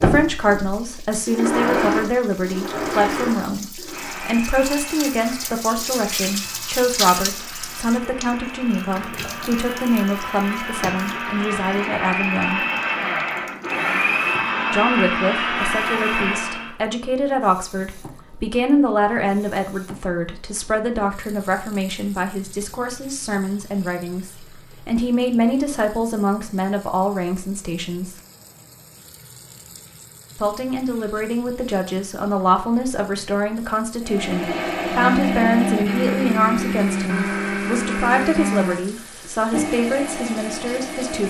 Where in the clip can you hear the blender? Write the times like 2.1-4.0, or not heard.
0.0-16.8, 34.0-41.2.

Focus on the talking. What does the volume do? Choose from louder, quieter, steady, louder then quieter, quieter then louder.
steady.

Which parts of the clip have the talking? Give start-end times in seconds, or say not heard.
0.0-12.6, 14.7-28.1, 30.4-41.2.